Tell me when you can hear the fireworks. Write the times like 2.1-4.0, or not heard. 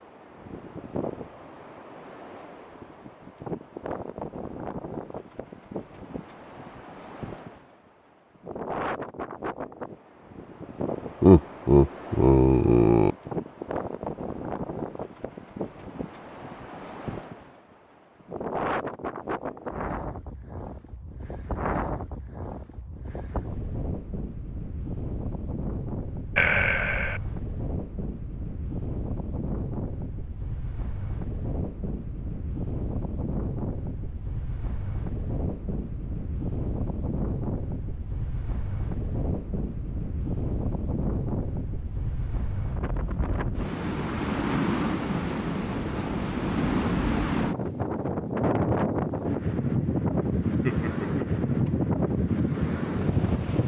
not heard.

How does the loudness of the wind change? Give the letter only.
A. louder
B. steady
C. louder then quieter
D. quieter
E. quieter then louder
A.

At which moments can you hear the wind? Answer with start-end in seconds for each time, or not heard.
0.0-53.6.